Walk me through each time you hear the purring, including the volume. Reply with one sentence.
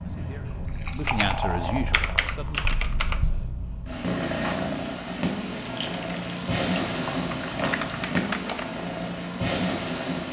The purring can be heard from 0.0 to 10.2 s, getting louder.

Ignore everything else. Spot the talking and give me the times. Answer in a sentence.
The talking can be heard from 0.0 to 2.6 s.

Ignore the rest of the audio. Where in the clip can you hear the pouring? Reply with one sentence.
The pouring can be heard from 0.5 to 2.7 s and from 5.5 to 8.2 s.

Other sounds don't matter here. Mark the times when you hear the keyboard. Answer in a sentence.
You can hear the keyboard from 1.0 to 3.5 s and from 7.5 to 8.8 s.